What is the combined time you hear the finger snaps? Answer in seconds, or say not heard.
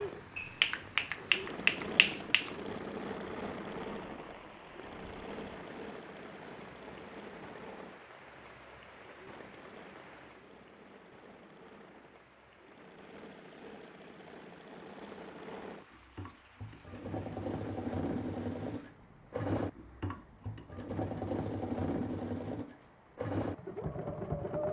2 s.